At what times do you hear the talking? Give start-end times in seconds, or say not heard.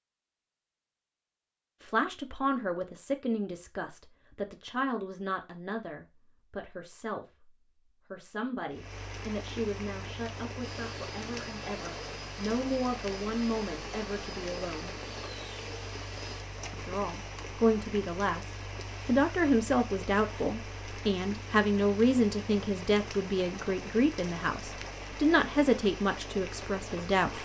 1.8-7.5, 8.1-14.9, 16.7-27.3.